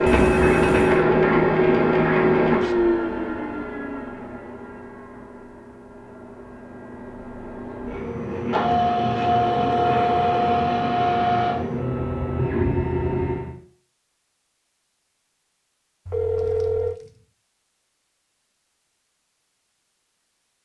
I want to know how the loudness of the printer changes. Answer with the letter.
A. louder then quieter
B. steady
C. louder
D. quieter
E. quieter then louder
E.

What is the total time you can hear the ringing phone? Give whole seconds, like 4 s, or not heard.
3 s.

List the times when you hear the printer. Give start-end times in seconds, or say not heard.
0.0-13.6.